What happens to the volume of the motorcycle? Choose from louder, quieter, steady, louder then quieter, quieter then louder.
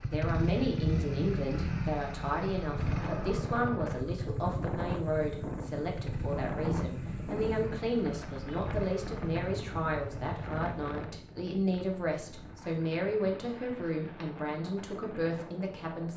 quieter.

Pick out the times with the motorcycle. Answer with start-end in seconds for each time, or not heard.
0.0-10.4.